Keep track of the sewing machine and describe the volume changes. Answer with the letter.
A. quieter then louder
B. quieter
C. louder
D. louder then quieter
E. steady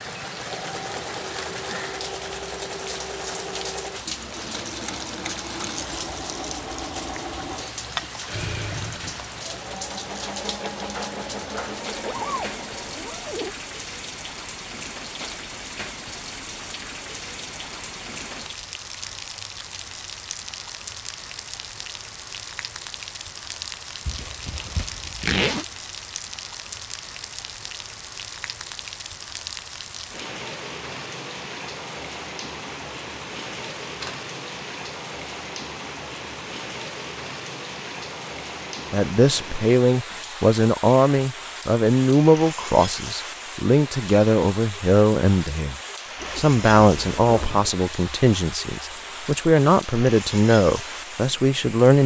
E.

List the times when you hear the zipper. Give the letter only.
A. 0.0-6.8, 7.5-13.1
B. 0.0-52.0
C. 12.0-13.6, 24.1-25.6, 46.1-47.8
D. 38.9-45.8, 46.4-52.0
C.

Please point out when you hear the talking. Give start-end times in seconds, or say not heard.
38.9-45.8, 46.4-52.0.